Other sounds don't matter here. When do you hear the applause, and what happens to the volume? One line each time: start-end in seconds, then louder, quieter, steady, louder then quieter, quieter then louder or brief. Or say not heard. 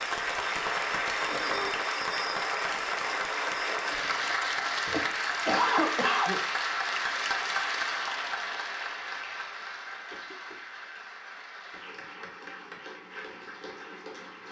0.0-14.4 quieter.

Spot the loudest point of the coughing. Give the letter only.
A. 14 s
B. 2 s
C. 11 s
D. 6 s
D.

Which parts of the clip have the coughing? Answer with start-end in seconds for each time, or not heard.
1.2-1.8, 4.8-6.4, 10.1-10.6.